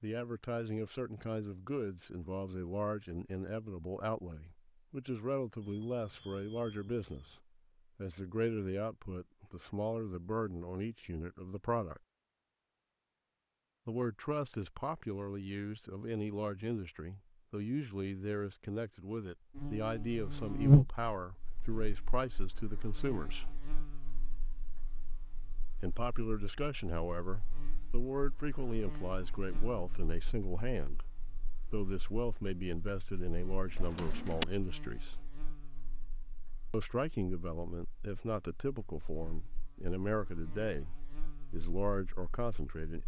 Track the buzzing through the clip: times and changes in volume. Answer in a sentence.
The buzzing can be heard from 19.6 to 43.0 s, getting quieter.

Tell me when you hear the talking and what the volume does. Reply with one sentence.
The talking can be heard from 0.0 to 12.0 s, at a steady volume; from 13.8 to 23.6 s, at a steady volume; from 25.8 to 35.1 s, at a steady volume; and from 36.7 to 43.0 s, at a steady volume.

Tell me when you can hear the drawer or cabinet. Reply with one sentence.
You can hear the drawer or cabinet from 32.5 to 32.9 s and from 33.6 to 34.5 s.